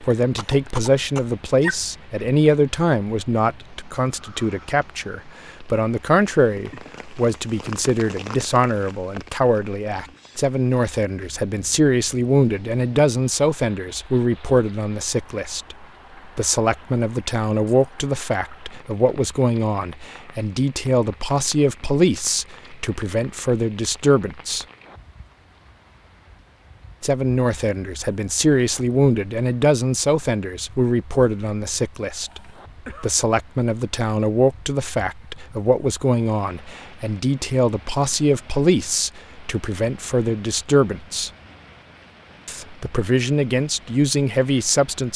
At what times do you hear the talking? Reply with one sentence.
You can hear the talking from 0.0 to 24.6 s, from 27.0 to 32.4 s, from 33.0 to 41.3 s and from 42.5 to 45.1 s.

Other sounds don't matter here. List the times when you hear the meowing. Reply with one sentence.
The meowing can't be heard in this clip.